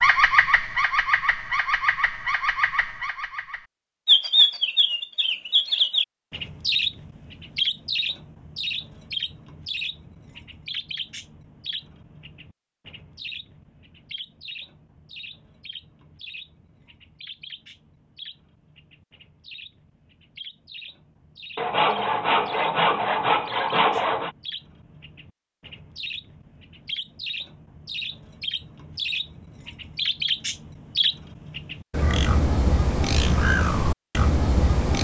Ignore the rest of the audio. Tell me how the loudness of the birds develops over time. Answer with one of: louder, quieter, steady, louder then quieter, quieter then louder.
quieter then louder.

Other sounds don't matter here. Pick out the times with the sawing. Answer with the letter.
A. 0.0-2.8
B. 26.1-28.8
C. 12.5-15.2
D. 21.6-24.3
D.